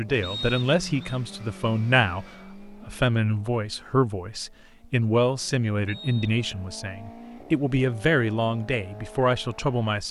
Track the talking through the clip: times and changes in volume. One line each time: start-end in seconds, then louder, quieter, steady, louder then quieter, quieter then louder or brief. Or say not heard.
0.0-10.0 steady.